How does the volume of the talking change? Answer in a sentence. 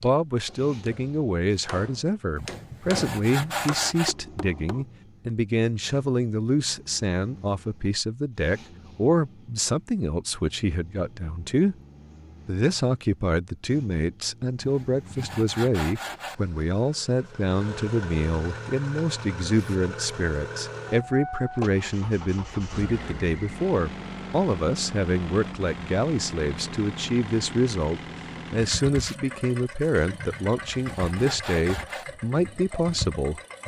The loudness of the talking stays about the same.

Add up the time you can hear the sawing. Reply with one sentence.
The sawing can be heard for 5 seconds in total.